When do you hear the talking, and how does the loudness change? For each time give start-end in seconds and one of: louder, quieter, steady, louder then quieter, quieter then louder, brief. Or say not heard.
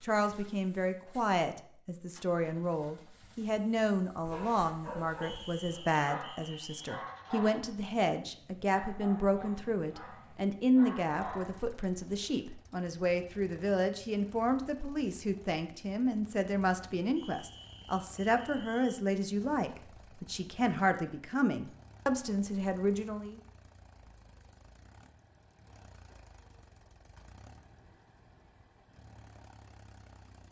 0.0-23.4 steady.